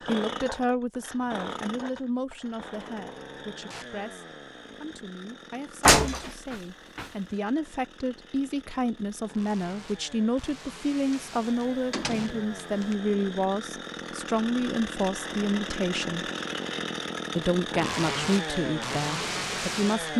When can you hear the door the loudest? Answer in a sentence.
The loudest moment of the door is at 6 seconds.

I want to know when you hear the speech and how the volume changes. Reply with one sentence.
The speech can be heard from 0.1 to 16.3 s, getting quieter then louder; and briefly from 17.4 to 20.1 s.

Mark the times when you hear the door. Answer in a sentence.
The door can be heard from 5.8 to 7.0 s and from 11.1 to 12.9 s.